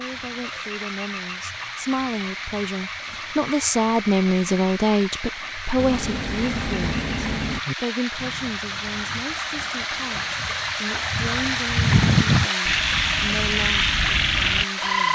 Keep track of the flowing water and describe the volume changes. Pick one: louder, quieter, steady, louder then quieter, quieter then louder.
louder.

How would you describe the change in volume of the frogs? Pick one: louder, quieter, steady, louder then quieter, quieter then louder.
louder.